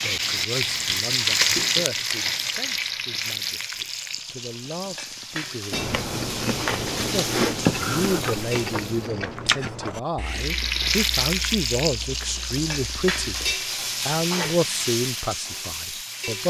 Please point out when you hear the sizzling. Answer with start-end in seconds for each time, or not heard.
0.0-9.1, 10.2-16.4.